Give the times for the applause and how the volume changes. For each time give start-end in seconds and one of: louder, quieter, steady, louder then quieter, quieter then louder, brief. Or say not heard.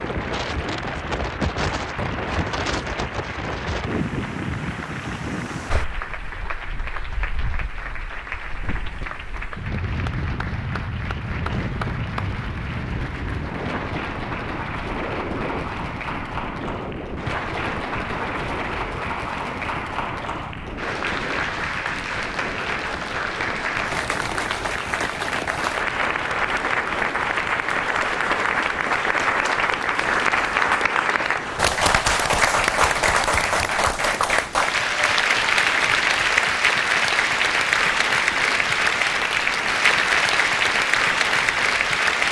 0.0-42.2 louder.